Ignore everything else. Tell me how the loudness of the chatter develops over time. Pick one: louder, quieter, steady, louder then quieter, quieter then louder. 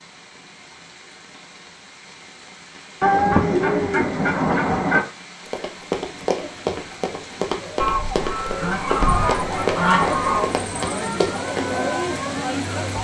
louder.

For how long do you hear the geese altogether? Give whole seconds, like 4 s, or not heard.
5 s.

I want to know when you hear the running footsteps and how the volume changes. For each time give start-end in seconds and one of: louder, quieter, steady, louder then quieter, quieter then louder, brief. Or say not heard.
5.5-11.8 steady.